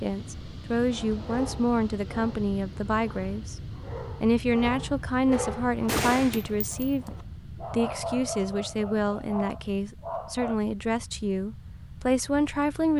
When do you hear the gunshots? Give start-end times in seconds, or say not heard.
5.3-7.2.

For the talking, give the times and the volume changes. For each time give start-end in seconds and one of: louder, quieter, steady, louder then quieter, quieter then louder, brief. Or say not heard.
0.0-12.9 steady.